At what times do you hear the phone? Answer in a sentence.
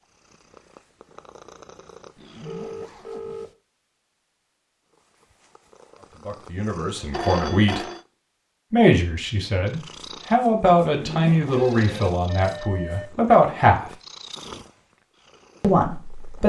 You can hear the phone from 2.5 to 3.5 s, from 7.1 to 8.0 s and from 11.5 to 13.1 s.